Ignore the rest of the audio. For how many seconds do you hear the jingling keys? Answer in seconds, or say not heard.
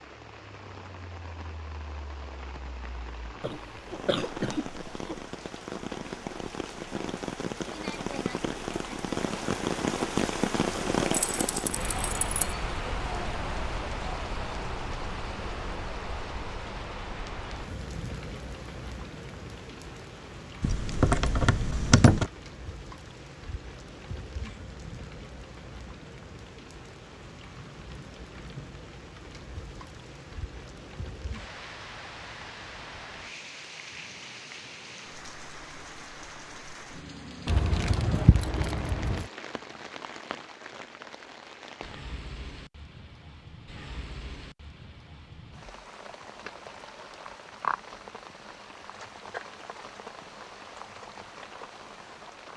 5 s.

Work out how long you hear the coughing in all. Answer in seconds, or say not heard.
2 s.